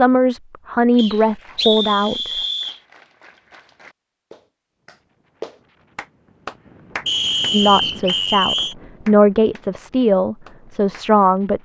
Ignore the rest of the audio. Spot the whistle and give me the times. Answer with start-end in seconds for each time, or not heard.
0.9-2.8, 7.0-8.8.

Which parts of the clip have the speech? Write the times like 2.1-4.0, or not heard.
0.0-2.3, 7.5-11.6.